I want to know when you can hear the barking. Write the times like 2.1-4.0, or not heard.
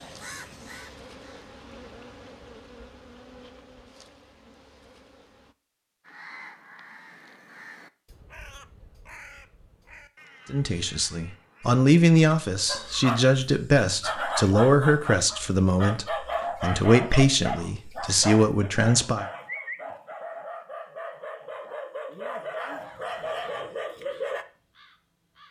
12.7-24.4.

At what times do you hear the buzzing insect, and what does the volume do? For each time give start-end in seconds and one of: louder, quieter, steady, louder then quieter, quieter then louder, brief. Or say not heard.
0.0-5.5 quieter.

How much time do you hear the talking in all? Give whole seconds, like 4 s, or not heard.
9 s.